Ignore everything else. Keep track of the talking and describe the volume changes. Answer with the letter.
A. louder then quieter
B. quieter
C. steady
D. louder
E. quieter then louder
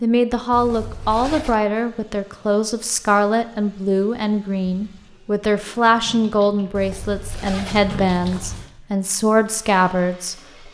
C.